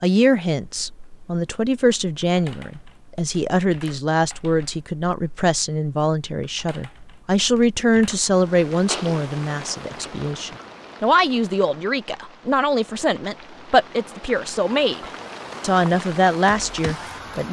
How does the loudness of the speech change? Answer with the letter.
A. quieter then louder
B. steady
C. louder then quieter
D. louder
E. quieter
B.